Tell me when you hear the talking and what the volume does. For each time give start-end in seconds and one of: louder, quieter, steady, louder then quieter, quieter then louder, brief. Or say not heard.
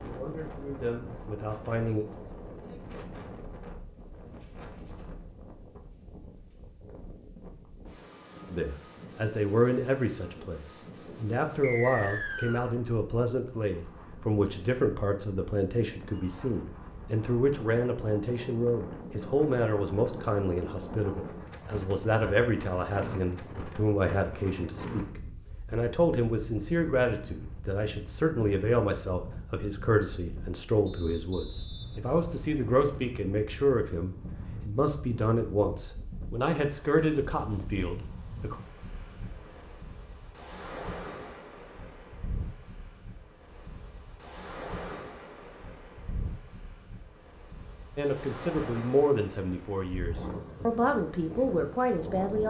0.1-2.0 brief
8.5-38.5 steady
48.0-52.4 quieter then louder.